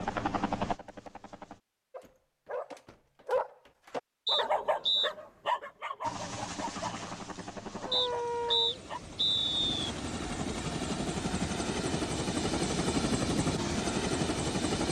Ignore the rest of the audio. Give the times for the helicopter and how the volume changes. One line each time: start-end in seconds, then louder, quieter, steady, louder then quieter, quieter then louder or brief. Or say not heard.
0.0-1.6 brief
6.0-14.8 louder.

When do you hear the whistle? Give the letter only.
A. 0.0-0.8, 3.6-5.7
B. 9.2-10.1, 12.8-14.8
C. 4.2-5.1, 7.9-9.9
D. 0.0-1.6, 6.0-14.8
C.